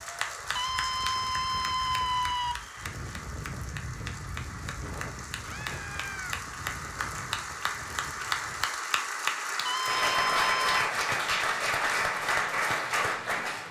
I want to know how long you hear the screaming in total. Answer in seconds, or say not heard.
4 s.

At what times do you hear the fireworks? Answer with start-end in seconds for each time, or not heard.
not heard.